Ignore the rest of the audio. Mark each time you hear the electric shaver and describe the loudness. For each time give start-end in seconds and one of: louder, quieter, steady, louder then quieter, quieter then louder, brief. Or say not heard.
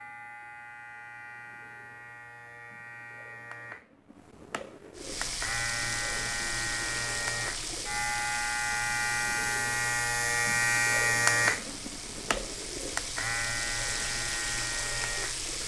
0.0-15.6 louder then quieter.